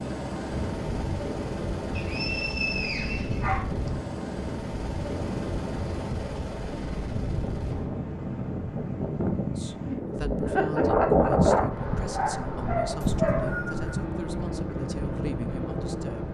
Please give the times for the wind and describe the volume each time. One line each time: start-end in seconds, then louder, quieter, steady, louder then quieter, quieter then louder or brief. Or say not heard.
0.0-16.2 louder then quieter.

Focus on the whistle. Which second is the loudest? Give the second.
3 s.